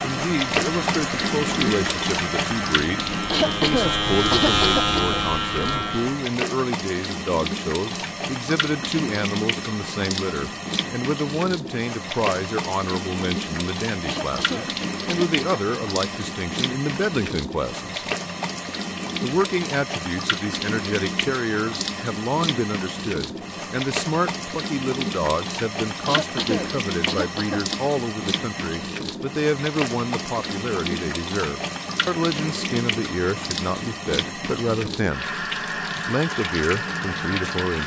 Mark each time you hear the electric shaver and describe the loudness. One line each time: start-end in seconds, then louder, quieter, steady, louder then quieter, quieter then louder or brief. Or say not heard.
0.0-6.2 louder.